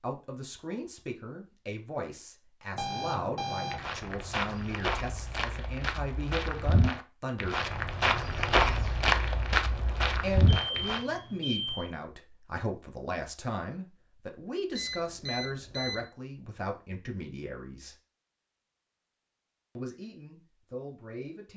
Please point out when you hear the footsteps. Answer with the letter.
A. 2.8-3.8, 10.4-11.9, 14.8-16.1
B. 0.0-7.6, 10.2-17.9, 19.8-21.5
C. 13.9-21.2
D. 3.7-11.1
D.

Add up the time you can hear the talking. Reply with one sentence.
You can hear the talking for 17 seconds altogether.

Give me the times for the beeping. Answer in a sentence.
The beeping can be heard from 2.8 to 3.8 s, from 10.4 to 11.9 s and from 14.8 to 16.1 s.